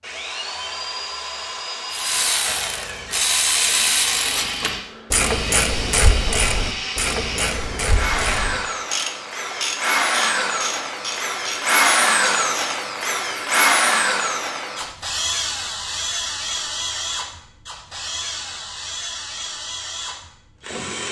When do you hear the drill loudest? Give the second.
12 s.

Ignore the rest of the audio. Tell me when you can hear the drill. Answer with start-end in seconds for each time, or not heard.
0.0-21.0.